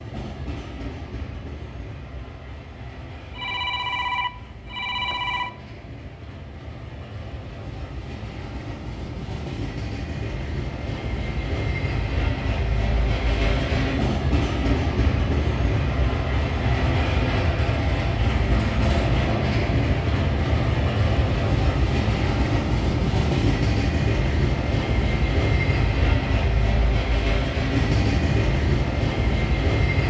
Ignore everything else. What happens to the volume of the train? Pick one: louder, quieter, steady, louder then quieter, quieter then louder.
louder.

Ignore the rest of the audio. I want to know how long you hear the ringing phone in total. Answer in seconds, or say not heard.
2 s.